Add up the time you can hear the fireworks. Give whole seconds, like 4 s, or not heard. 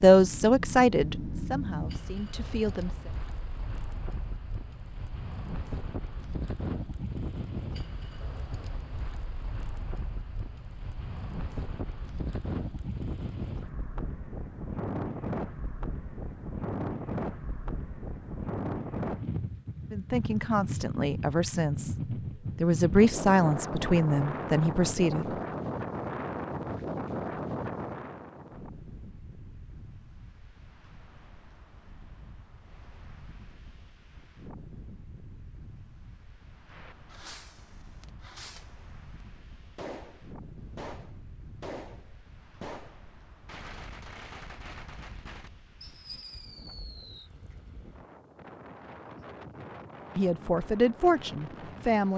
10 s.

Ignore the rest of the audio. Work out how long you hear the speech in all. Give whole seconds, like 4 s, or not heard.
10 s.